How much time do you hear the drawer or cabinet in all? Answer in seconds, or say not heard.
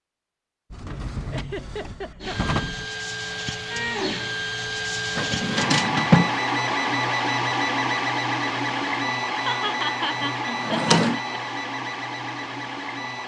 4 s.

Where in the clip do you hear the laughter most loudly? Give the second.
10 s.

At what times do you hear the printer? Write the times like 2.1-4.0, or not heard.
2.2-13.2.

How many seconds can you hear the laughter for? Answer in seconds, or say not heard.
3 s.